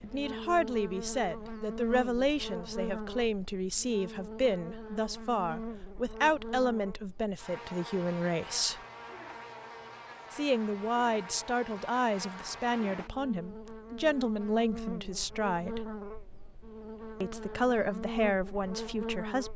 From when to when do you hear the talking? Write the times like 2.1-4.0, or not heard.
0.0-8.8, 10.3-15.8, 17.2-19.5.